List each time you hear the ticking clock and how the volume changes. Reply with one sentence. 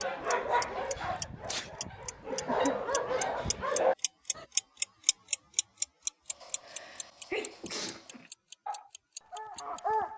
You can hear the ticking clock from 0.0 to 9.8 s, getting louder then quieter.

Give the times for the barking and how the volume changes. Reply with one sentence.
The barking can be heard from 0.0 to 4.5 s, getting quieter then louder; and briefly from 8.7 to 10.1 s.